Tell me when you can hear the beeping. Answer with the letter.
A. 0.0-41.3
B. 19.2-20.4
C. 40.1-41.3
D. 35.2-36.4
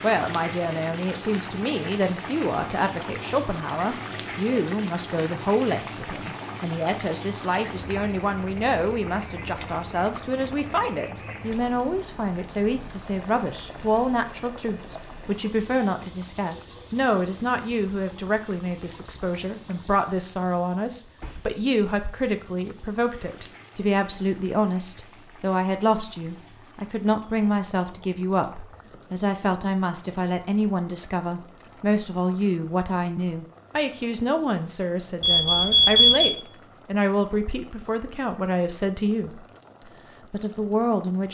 D.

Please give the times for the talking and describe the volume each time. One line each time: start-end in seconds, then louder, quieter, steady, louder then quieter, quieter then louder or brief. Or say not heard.
0.0-41.3 steady.